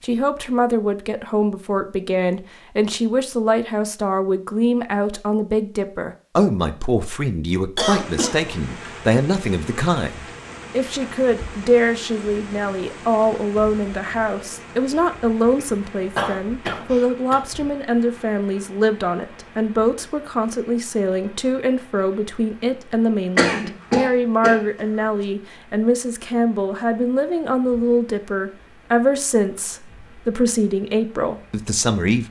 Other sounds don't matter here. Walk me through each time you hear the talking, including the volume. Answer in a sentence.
The talking can be heard from 0.0 to 32.2 s, at a steady volume.